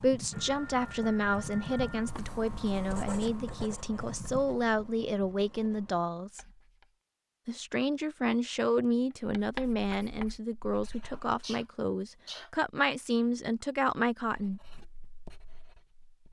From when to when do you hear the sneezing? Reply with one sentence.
You can hear the sneezing from 11.1 to 12.5 s.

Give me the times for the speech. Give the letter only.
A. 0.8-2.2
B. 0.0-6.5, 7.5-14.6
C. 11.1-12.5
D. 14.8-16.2
B.